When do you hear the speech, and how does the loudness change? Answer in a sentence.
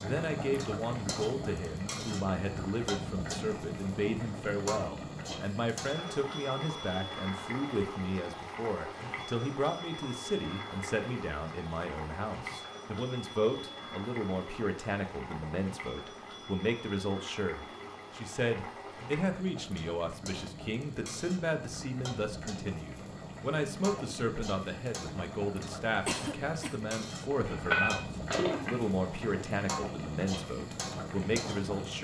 The speech can be heard from 0.0 to 31.9 s, at a steady volume.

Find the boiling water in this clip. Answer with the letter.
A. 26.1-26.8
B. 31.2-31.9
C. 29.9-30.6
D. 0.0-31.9
D.